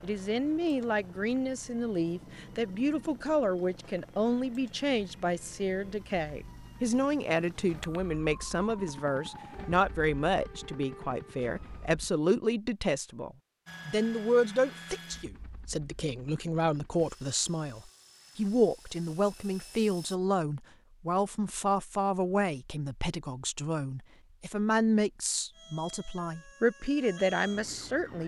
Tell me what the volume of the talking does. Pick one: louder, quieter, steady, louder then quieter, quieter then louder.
steady.